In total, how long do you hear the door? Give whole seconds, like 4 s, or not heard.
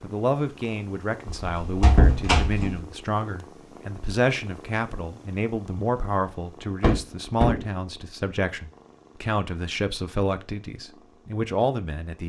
2 s.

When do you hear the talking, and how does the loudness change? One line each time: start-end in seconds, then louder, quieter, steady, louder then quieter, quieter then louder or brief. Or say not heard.
0.0-12.2 steady.